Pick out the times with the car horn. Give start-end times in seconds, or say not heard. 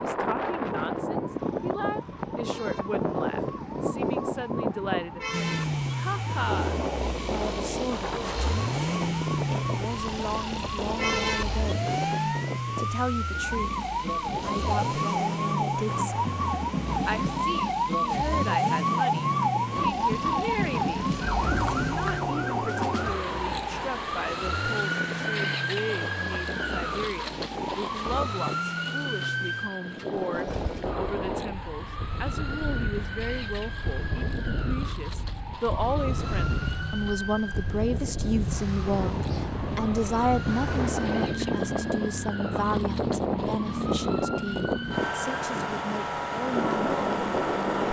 not heard.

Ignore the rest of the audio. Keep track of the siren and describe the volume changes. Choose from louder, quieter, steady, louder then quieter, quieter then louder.
louder then quieter.